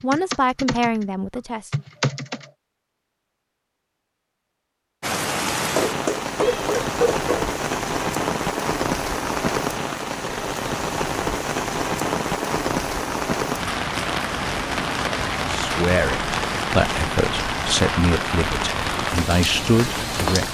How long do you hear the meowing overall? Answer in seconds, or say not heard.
2 s.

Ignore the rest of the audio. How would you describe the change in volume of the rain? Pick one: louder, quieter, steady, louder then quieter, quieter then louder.
steady.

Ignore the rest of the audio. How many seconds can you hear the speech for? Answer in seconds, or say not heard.
7 s.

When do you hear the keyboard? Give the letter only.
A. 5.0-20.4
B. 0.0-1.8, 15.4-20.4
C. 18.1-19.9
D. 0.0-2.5
D.